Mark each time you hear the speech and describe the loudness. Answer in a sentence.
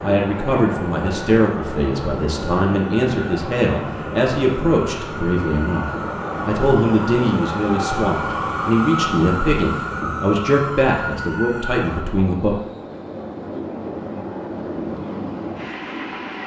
You can hear the speech from 0.0 to 12.6 s, at a steady volume.